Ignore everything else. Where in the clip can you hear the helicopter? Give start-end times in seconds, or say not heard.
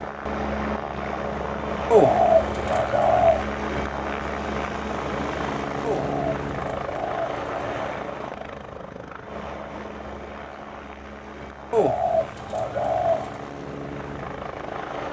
0.0-15.0.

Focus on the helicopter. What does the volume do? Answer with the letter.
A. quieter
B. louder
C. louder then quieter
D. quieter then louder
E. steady
A.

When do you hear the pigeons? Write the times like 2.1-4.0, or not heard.
1.9-3.5, 5.8-7.9, 11.7-13.4.